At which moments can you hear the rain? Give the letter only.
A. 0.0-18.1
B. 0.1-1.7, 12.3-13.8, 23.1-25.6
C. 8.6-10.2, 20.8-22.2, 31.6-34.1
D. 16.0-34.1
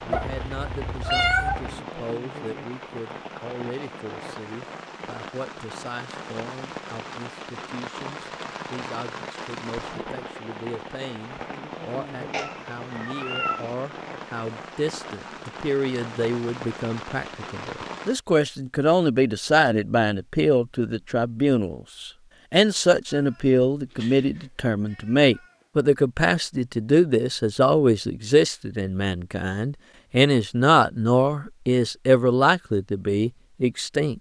A.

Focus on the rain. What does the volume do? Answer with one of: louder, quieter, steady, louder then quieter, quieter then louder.
steady.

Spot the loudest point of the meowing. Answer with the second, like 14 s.
1 s.